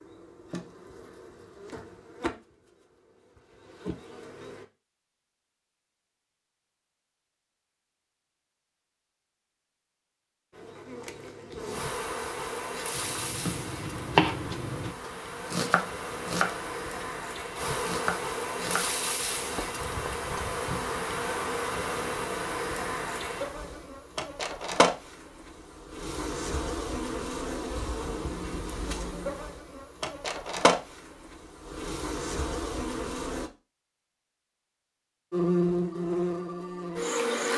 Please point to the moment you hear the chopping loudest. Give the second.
14 s.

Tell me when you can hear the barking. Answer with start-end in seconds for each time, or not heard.
not heard.